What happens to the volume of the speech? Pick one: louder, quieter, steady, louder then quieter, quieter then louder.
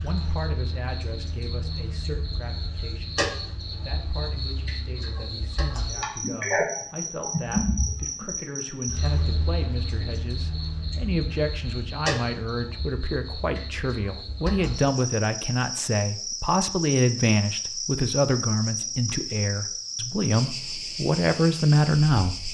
louder.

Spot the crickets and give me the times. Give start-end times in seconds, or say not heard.
0.0-22.4.